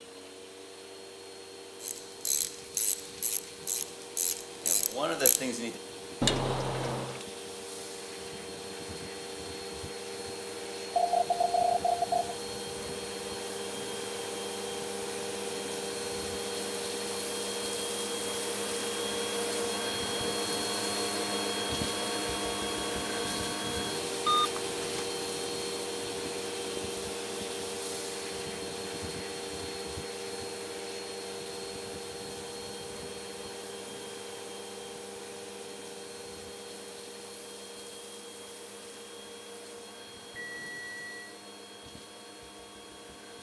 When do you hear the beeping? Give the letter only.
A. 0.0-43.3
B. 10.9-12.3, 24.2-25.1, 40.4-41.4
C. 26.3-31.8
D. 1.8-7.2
B.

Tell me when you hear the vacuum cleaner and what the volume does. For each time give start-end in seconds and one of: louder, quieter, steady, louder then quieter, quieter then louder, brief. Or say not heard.
0.0-43.3 louder then quieter.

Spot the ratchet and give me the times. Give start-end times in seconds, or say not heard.
1.8-7.2.